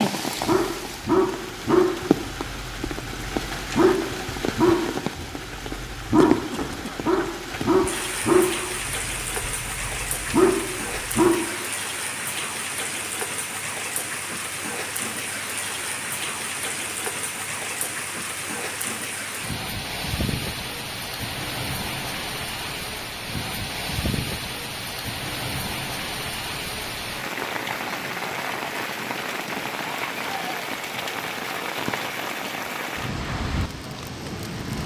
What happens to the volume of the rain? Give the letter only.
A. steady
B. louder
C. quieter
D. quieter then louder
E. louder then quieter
A.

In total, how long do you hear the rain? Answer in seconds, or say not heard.
35 s.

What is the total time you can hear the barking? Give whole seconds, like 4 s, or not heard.
11 s.